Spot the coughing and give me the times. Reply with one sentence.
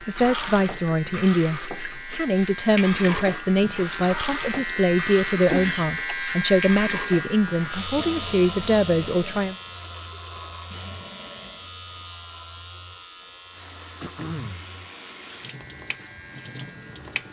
The coughing can be heard from 5.5 to 6.0 s and from 14.0 to 14.7 s.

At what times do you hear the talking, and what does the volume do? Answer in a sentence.
The talking can be heard from 0.1 to 9.6 s, at a steady volume.